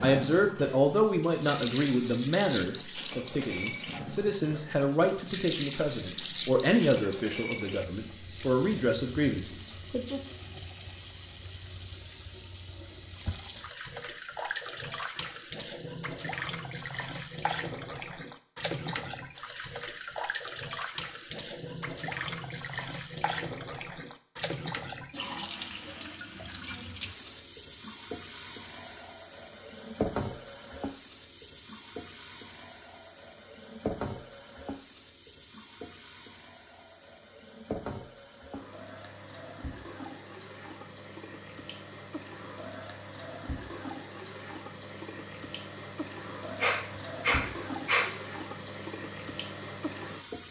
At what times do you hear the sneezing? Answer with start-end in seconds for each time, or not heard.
46.6-48.1.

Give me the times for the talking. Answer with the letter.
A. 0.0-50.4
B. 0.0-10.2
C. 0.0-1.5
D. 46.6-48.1
B.